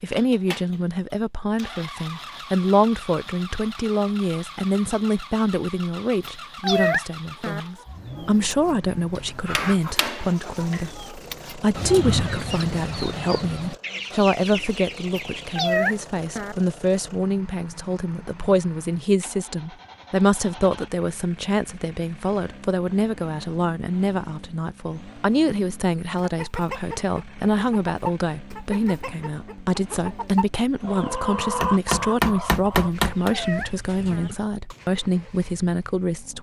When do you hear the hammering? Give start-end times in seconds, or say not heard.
9.2-10.8, 31.6-33.4.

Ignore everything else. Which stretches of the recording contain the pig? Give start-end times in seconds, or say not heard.
not heard.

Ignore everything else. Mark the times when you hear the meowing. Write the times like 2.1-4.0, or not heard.
6.2-7.6, 15.2-16.6, 32.9-34.3.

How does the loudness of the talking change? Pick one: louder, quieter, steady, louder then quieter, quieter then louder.
steady.